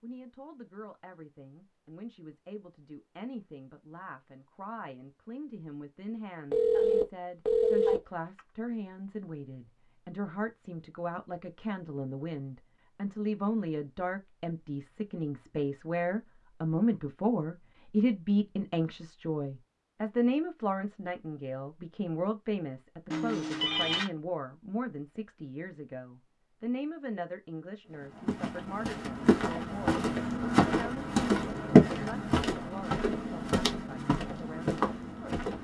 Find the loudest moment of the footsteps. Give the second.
32 s.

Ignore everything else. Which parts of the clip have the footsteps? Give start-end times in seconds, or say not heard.
28.1-35.5.